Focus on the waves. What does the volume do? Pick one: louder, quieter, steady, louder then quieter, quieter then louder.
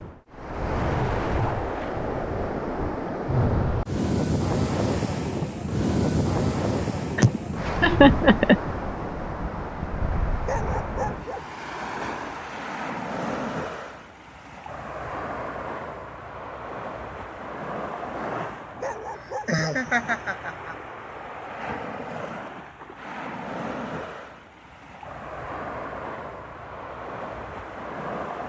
quieter.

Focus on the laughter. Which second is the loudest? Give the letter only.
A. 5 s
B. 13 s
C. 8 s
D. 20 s
C.